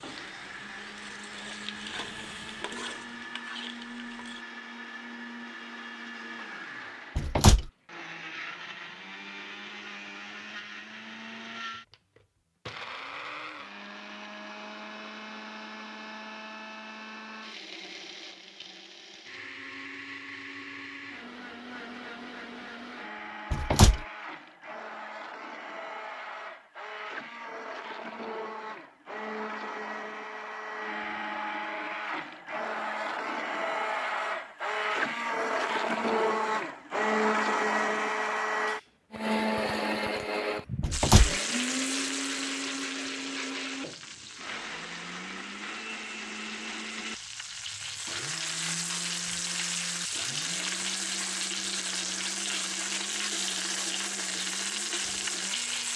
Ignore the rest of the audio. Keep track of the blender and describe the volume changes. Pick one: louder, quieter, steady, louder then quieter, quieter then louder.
louder then quieter.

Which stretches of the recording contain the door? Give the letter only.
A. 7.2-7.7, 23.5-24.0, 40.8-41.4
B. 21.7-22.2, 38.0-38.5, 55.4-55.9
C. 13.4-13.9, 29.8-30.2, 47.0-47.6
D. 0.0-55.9
A.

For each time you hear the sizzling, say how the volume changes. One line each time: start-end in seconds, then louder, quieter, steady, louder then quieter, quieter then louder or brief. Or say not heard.
0.0-4.5 louder
40.9-55.9 quieter then louder.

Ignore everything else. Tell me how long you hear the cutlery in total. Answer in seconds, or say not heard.
not heard.